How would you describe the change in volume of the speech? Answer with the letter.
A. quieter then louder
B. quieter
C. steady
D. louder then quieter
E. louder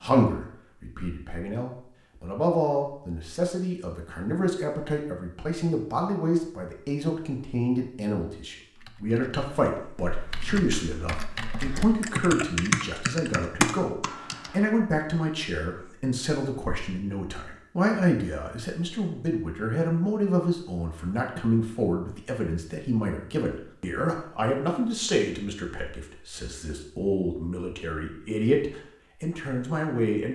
C.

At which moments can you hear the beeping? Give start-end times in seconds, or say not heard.
not heard.